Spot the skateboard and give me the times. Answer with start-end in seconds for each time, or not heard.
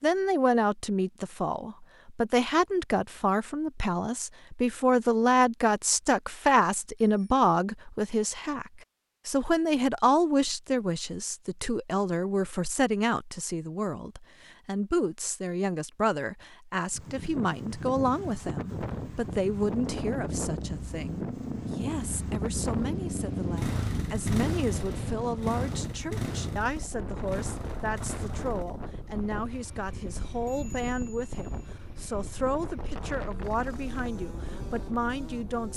not heard.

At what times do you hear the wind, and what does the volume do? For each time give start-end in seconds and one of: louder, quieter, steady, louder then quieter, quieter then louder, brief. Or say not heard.
16.9-35.7 quieter.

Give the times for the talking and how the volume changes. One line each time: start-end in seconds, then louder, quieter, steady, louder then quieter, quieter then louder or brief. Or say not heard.
0.0-35.7 quieter.